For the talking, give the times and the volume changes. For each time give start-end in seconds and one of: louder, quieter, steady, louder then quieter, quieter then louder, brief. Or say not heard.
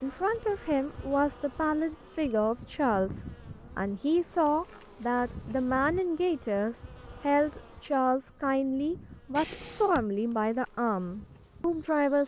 0.0-12.2 steady.